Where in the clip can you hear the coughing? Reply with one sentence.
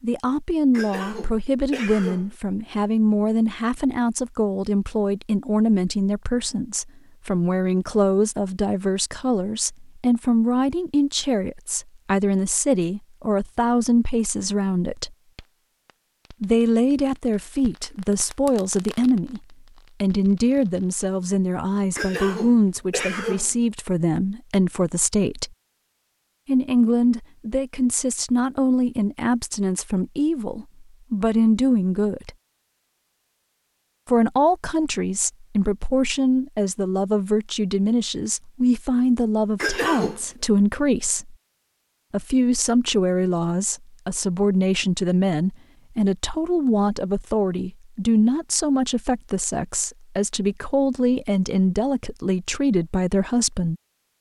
The coughing can be heard from 0.7 to 2.4 s, from 21.9 to 23.6 s and from 39.5 to 40.2 s.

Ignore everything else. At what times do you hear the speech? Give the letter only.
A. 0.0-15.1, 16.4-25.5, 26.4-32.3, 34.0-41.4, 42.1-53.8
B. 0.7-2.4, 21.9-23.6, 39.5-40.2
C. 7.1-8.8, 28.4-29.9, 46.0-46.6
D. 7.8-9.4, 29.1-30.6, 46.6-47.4
A.